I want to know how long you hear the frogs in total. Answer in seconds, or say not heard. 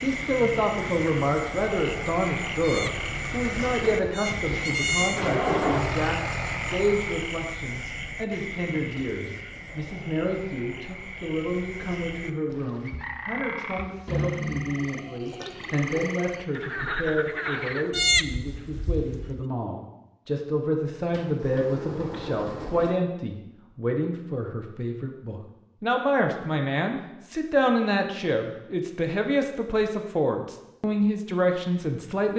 18 s.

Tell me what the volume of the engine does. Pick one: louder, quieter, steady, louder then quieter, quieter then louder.
louder.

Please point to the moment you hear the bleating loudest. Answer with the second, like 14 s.
18 s.